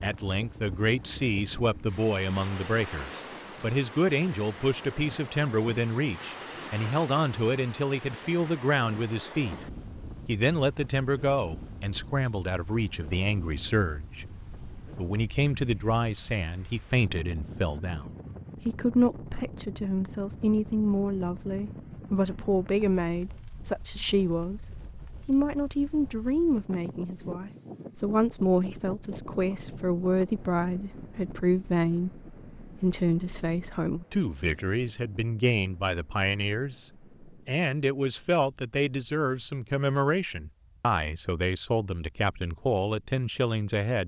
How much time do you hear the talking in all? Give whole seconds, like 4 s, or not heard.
43 s.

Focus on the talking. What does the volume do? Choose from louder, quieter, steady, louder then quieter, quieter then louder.
steady.